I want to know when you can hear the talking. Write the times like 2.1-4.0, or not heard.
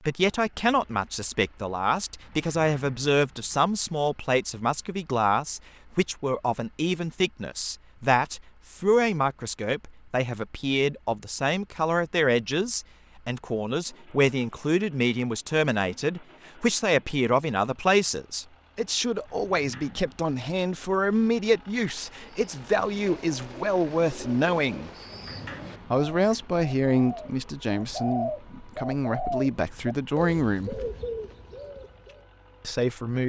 0.1-24.9, 25.9-30.8, 32.6-33.2.